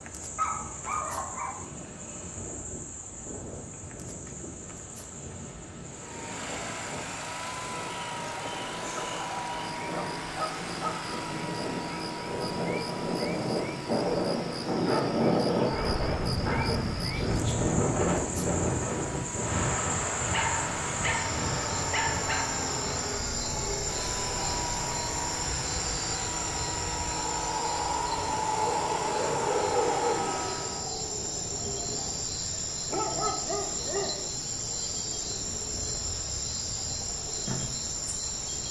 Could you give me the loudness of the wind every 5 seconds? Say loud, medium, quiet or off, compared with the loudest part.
quiet, quiet, loud, loud, medium, quiet, quiet, quiet.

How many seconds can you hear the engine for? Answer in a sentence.
You can hear the engine for 25 seconds altogether.